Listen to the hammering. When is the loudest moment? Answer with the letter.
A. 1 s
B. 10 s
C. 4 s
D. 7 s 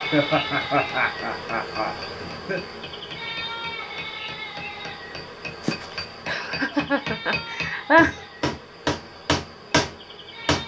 B.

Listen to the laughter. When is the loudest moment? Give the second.
8 s.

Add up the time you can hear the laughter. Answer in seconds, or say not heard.
5 s.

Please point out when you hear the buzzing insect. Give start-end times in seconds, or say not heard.
0.0-10.6.